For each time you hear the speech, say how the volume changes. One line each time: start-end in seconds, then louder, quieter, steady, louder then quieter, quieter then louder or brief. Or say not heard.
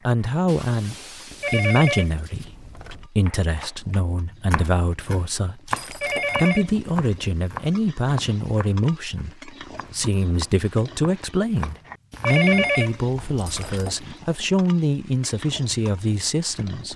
0.1-16.9 steady.